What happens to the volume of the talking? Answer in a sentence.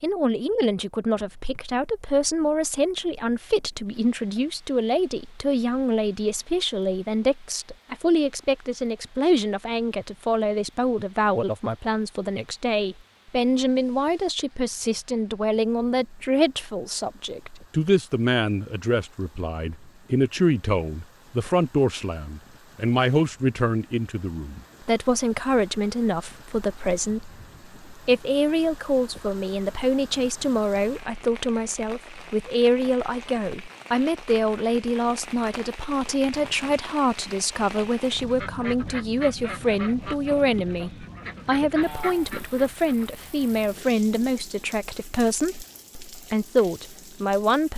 The volume of the talking stays about the same.